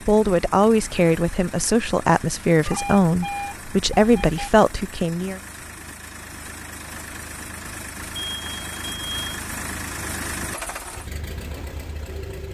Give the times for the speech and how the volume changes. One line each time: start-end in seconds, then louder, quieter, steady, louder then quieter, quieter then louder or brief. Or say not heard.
0.1-5.4 steady.